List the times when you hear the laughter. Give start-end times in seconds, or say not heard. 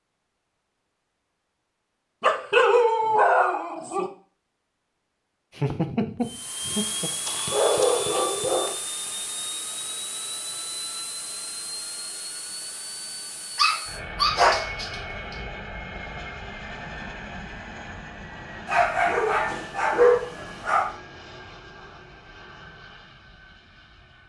5.5-7.1.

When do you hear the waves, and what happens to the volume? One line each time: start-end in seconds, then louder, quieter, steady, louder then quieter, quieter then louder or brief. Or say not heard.
not heard.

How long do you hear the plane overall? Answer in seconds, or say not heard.
18 s.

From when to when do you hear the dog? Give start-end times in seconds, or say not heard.
2.2-4.1, 7.2-8.8, 13.6-15.3, 18.6-20.9.